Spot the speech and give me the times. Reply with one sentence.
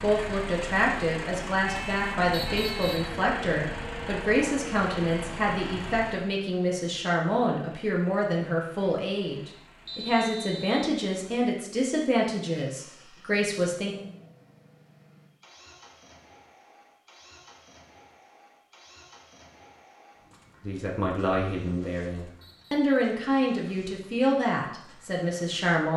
You can hear the speech from 0.0 to 13.9 s and from 20.6 to 25.9 s.